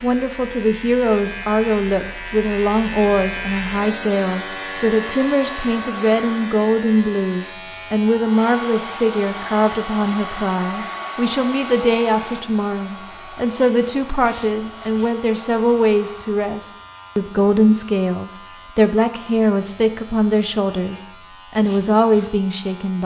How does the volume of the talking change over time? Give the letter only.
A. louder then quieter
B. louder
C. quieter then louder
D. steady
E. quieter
D.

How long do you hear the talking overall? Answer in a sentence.
The talking can be heard for 23 seconds in total.